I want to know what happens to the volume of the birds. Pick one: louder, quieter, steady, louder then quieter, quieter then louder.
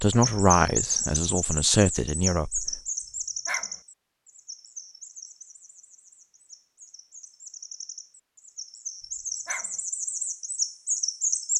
quieter then louder.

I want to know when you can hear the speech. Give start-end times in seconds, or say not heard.
0.0-2.8.